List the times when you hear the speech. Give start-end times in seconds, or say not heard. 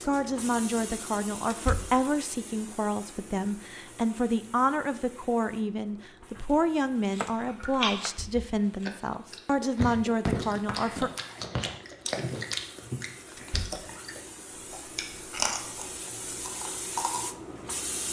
0.1-11.1.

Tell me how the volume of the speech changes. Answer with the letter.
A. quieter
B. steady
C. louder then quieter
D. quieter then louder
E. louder
B.